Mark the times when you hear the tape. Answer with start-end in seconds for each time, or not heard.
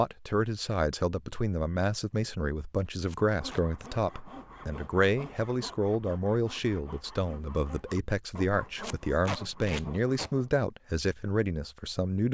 3.0-3.6, 8.8-10.3.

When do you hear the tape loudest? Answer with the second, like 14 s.
9 s.